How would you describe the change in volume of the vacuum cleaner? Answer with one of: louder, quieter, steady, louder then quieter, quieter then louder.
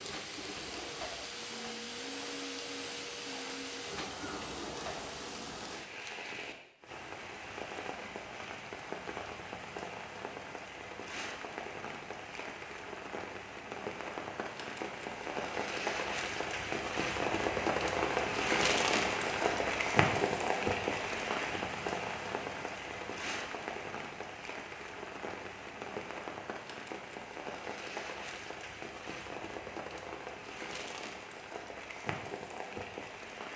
steady.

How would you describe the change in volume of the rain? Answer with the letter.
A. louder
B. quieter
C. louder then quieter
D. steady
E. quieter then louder
C.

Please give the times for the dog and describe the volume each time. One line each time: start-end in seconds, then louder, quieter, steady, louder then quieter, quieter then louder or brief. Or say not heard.
not heard.